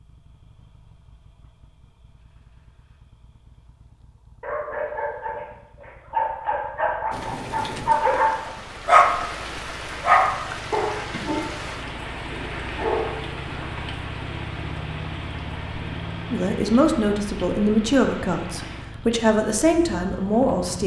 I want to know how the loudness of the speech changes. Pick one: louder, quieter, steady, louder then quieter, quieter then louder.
quieter then louder.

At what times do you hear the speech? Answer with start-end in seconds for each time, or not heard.
16.3-20.8.